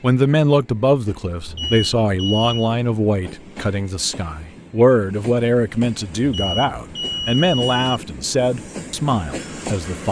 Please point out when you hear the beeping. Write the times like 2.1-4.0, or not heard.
1.4-2.7, 6.2-8.0.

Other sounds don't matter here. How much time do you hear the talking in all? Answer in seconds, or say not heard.
10 s.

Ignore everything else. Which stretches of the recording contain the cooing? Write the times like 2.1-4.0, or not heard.
not heard.